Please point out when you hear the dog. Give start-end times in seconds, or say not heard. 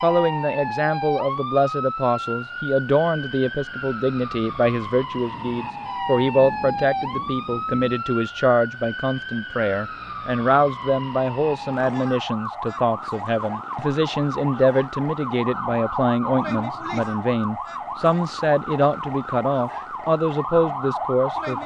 not heard.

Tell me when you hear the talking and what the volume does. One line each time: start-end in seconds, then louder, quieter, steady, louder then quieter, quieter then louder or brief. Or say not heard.
0.0-21.6 steady.